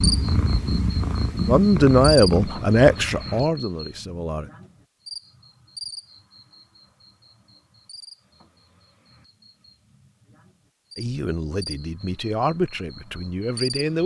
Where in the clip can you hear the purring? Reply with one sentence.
You can hear the purring from 0.0 to 3.5 s.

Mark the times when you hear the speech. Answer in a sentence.
You can hear the speech from 1.4 to 4.5 s and from 10.9 to 14.0 s.